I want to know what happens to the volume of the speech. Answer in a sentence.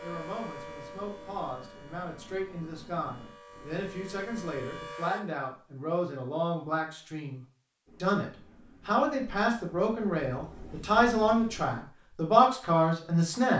The loudness of the speech goes up.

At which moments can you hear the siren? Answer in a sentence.
You can hear the siren from 0.0 to 5.2 s.